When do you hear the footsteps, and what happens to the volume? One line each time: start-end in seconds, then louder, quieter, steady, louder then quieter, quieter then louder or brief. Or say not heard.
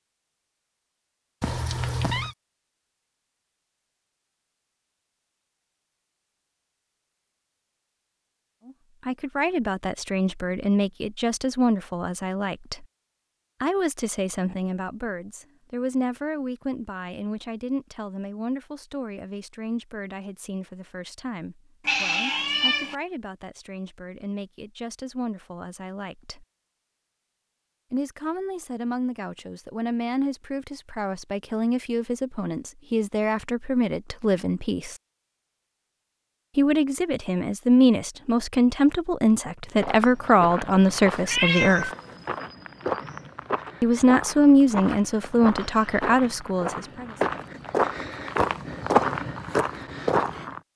39.8-50.6 louder.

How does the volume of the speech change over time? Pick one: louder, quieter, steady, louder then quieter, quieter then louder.
quieter then louder.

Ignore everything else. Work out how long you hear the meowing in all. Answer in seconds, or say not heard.
3 s.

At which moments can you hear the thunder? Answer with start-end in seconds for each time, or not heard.
not heard.